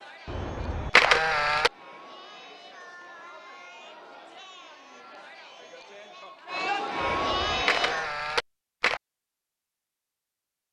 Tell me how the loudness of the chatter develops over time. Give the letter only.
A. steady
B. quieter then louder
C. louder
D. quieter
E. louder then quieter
C.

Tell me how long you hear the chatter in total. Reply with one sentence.
The chatter can be heard for 8 seconds in total.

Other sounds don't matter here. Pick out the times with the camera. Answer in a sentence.
You can hear the camera from 0.2 to 1.7 s and from 7.0 to 9.0 s.